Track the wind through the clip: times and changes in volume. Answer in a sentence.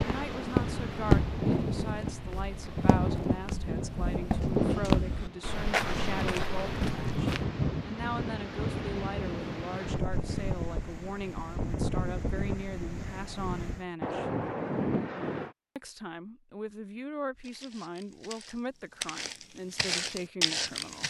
The wind can be heard from 0.0 to 15.5 s, at a steady volume.